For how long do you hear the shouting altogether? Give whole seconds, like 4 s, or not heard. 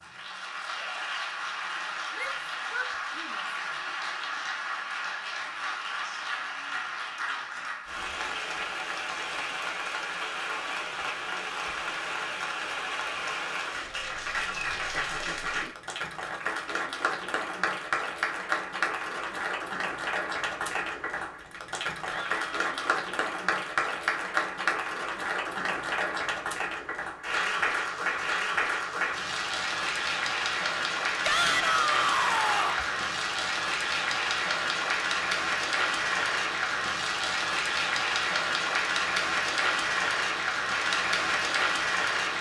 4 s.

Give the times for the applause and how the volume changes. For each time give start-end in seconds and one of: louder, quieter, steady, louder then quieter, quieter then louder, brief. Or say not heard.
0.0-42.3 louder.